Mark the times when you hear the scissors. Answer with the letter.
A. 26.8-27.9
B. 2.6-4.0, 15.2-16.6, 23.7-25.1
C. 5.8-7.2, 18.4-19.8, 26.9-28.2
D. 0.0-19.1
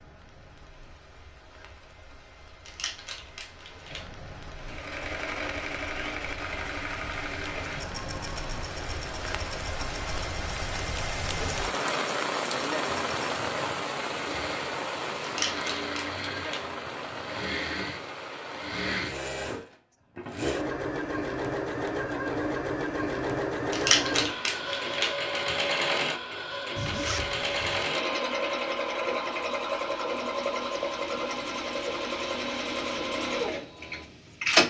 B.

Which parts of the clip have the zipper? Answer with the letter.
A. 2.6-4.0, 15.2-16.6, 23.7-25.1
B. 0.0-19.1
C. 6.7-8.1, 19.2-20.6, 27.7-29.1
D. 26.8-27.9
D.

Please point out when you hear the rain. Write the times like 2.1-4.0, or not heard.
0.0-19.1.